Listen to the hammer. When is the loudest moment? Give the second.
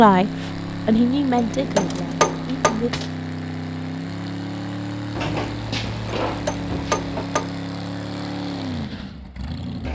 2 s.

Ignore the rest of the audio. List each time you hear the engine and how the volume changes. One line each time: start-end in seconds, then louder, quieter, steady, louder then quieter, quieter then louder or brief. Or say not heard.
0.0-9.9 steady.